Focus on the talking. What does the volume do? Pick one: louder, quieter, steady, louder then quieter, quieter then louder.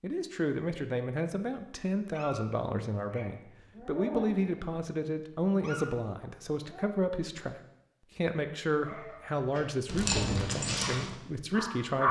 steady.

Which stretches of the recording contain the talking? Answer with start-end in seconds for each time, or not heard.
0.0-7.5, 8.2-12.0.